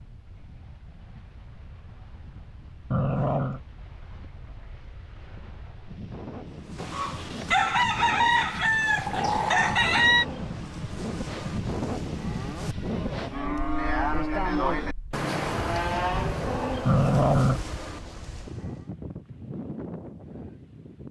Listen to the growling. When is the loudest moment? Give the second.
17 s.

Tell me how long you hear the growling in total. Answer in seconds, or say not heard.
2 s.